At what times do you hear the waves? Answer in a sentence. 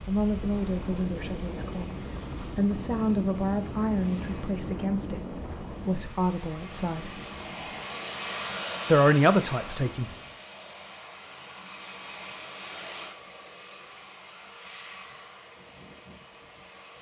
The waves can be heard from 0.0 to 10.4 s.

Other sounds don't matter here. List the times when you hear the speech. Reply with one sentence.
You can hear the speech from 0.1 to 7.1 s and from 8.8 to 10.1 s.